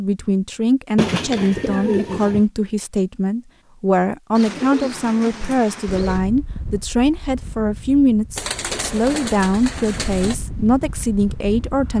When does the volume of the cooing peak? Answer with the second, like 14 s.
2 s.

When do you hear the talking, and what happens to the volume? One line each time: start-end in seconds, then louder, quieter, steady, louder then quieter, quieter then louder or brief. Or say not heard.
0.0-11.9 steady.